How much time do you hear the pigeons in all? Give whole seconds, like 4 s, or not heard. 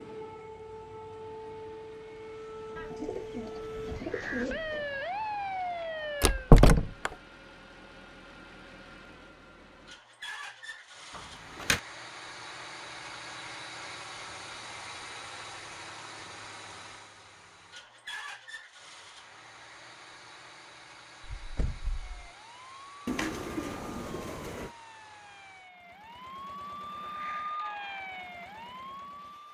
4 s.